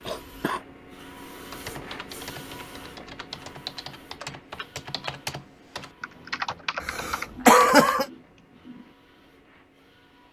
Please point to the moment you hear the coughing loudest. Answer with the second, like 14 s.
8 s.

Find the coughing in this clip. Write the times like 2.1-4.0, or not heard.
0.1-0.6, 6.8-8.1.